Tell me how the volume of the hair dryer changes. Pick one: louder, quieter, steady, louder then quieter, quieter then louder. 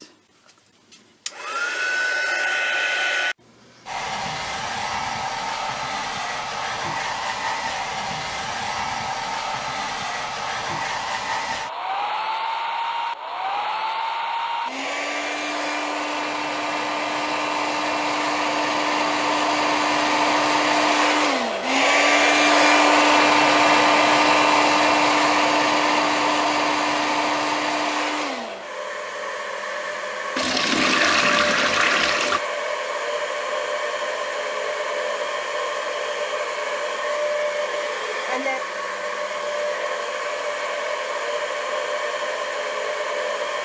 louder then quieter.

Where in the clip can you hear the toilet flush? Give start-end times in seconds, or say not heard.
30.4-32.4.